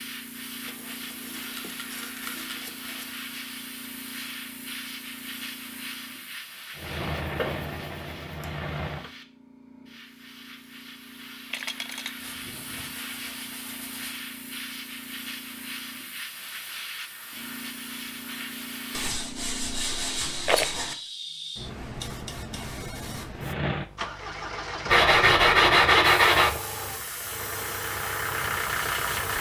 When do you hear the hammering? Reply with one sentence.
You can't hear the hammering here.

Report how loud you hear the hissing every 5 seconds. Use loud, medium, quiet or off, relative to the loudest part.
loud, medium, loud, loud, loud, loud.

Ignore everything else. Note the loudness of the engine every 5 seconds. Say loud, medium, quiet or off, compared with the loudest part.
off, loud, off, off, loud, loud.